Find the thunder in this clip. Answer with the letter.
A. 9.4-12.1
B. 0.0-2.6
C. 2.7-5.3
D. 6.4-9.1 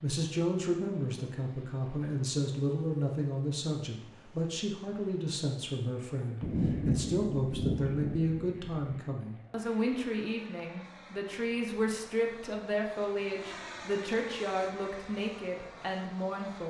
D.